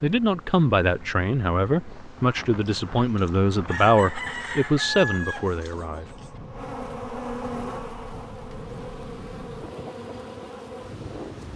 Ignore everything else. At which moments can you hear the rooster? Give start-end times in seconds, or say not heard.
2.6-6.3.